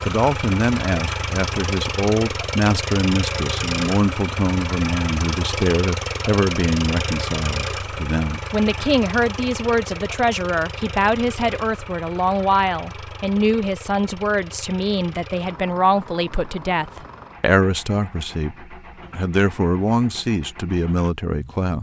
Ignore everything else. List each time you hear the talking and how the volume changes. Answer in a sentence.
You can hear the talking from 0.0 to 21.7 s, at a steady volume.